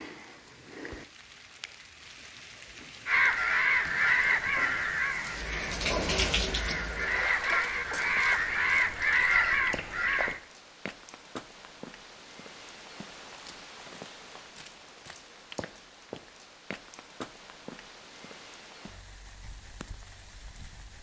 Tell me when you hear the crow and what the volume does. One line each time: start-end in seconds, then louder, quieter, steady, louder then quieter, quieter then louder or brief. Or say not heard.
3.0-10.4 quieter then louder.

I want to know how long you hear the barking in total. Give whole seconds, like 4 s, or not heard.
not heard.